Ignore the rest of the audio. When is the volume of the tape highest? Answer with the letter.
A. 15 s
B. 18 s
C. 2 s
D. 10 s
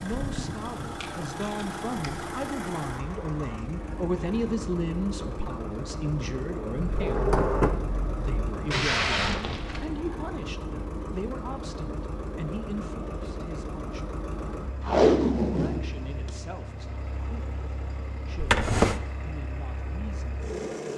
A.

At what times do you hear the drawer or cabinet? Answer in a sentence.
The drawer or cabinet can be heard from 6.8 to 8.3 s and from 18.4 to 19.0 s.